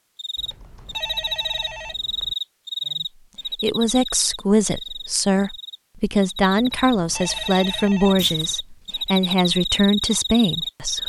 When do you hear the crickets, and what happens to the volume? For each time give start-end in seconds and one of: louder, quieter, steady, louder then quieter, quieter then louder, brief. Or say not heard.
0.1-11.0 quieter then louder.